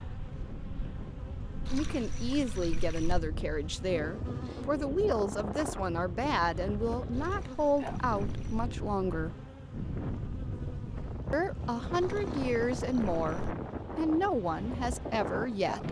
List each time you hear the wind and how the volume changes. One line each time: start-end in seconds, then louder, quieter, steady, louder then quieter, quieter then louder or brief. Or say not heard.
0.0-15.8 louder.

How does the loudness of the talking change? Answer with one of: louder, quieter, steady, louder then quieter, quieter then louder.
steady.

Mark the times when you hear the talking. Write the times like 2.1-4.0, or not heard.
1.7-9.3, 11.3-15.8.